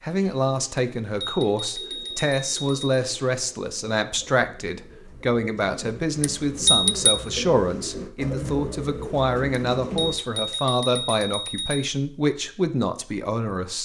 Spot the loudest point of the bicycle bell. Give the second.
7 s.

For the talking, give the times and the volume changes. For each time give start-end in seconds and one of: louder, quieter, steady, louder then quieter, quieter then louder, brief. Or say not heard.
0.0-13.8 steady.